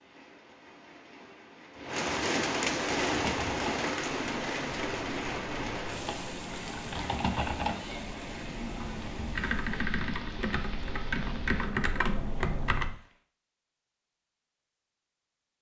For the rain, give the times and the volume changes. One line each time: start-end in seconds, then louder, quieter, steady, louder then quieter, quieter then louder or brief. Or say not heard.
0.0-13.2 quieter.